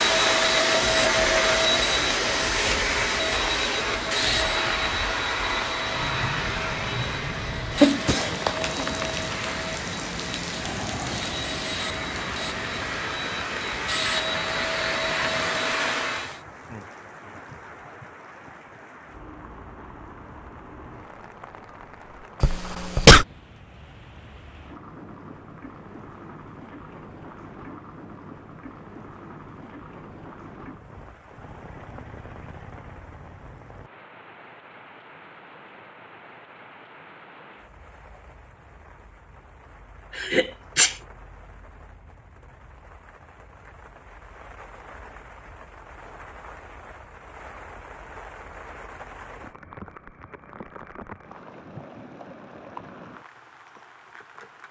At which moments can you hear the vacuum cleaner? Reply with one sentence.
You can hear the vacuum cleaner from 0.0 to 16.4 s.